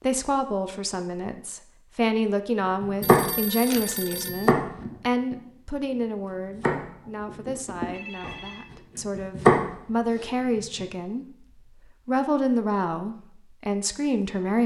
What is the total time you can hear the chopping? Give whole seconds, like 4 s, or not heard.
6 s.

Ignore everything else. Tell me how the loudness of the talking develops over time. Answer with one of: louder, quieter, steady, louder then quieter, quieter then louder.
quieter then louder.